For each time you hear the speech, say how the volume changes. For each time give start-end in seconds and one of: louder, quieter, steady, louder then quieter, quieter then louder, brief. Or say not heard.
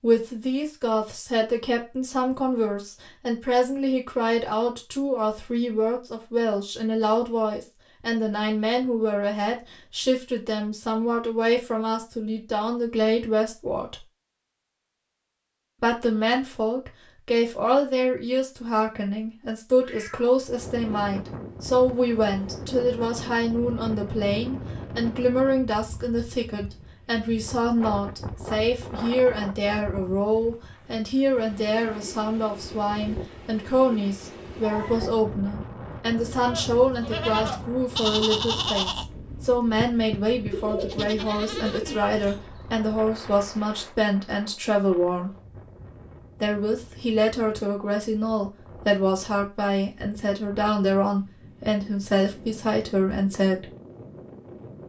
0.0-14.0 steady
15.8-45.3 steady
46.4-53.7 steady.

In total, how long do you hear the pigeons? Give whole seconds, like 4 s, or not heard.
2 s.